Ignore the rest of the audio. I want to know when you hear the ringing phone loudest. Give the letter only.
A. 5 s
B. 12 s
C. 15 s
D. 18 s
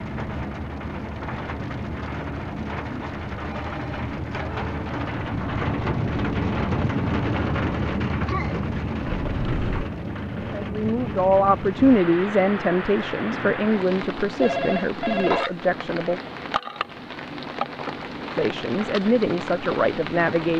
C.